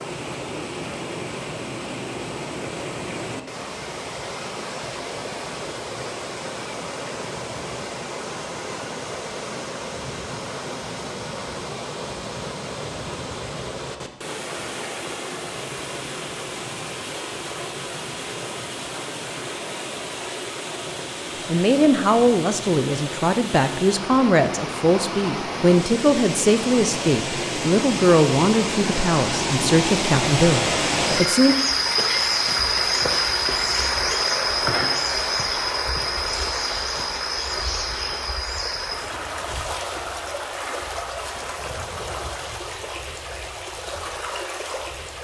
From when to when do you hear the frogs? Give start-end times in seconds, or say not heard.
not heard.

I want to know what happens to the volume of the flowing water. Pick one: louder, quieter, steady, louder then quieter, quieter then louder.
louder then quieter.